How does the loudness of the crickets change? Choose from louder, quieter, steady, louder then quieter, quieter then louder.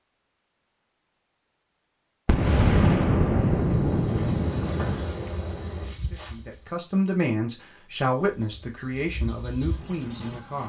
quieter then louder.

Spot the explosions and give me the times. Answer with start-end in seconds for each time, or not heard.
2.2-5.0.